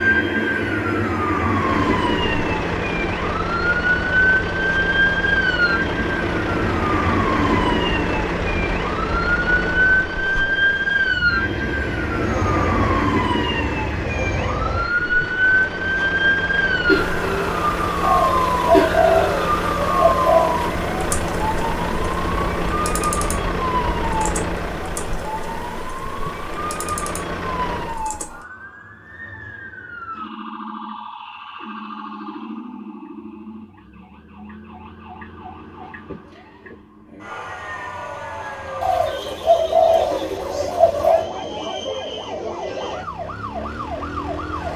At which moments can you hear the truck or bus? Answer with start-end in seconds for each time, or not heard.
1.6-28.1.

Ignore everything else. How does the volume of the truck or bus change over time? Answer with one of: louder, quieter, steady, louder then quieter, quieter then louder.
steady.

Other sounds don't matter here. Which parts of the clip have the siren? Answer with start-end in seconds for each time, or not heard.
0.0-44.7.